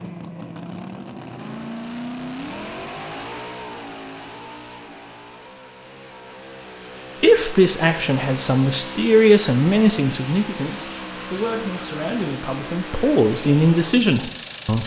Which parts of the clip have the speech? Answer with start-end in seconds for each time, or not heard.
7.2-14.8.